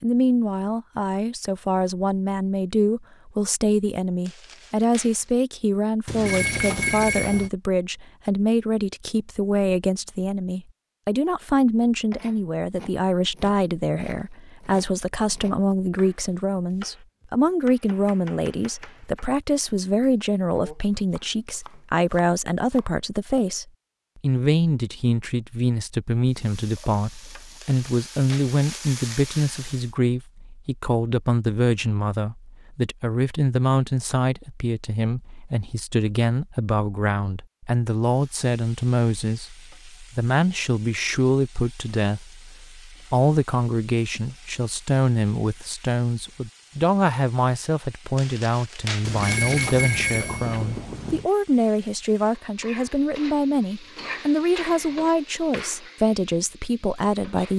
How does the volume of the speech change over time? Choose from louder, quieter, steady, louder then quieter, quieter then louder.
steady.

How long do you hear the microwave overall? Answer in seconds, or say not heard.
not heard.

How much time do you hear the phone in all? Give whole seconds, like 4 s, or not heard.
4 s.